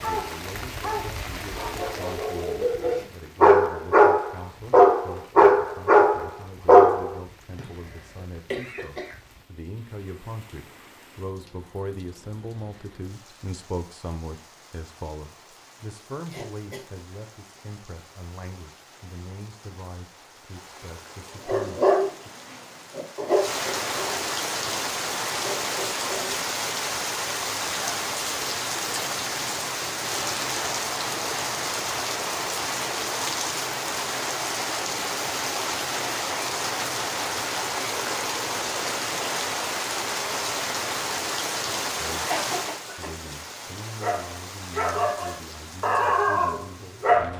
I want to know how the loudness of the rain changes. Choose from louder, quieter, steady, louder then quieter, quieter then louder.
quieter then louder.